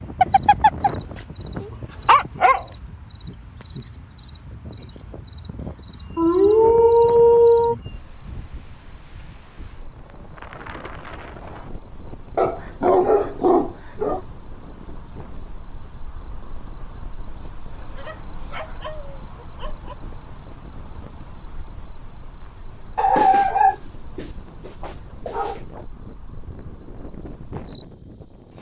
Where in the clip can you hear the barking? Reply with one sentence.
You can hear the barking from 0.2 to 2.6 s, from 6.2 to 7.8 s, from 12.3 to 14.2 s, from 17.9 to 19.9 s and from 22.9 to 25.6 s.